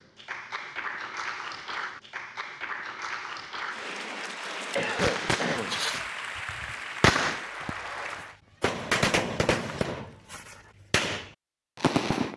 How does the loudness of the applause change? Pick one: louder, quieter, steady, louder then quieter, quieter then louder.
steady.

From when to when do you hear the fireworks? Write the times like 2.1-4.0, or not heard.
5.0-12.3.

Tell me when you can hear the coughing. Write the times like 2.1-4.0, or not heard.
4.8-5.8.